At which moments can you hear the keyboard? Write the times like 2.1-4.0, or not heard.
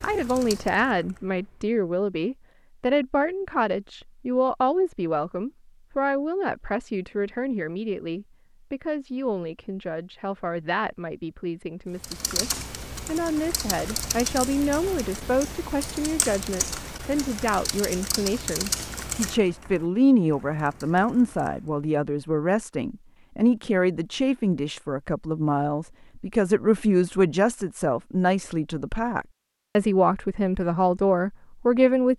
0.0-1.8, 12.0-21.8.